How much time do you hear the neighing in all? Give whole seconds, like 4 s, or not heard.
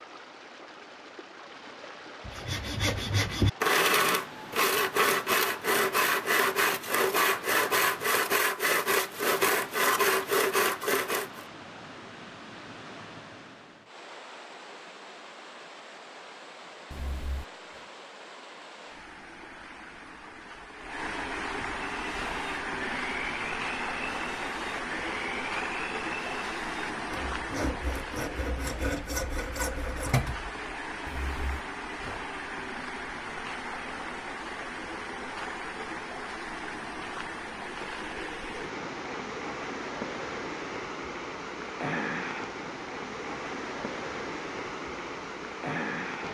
2 s.